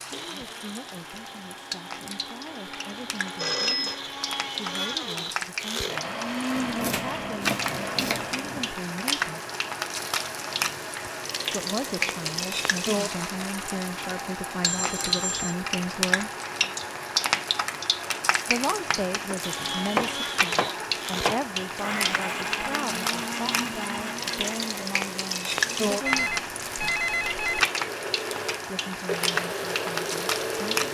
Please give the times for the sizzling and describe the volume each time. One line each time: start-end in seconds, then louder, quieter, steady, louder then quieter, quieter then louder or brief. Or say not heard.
0.0-30.8 louder.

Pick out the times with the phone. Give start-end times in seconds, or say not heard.
3.4-4.0, 14.7-15.6, 26.1-27.6.